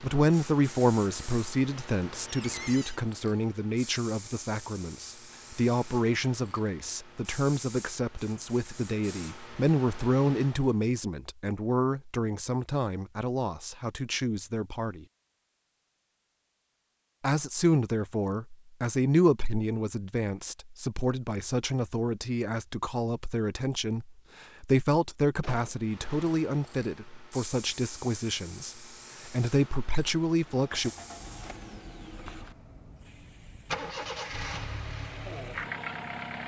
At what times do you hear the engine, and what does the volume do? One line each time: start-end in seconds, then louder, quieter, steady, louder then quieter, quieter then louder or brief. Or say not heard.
30.5-36.4 louder.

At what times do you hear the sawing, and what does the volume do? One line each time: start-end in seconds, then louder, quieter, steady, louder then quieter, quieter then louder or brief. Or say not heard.
not heard.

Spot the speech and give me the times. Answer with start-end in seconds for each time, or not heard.
0.0-15.1, 17.2-30.9.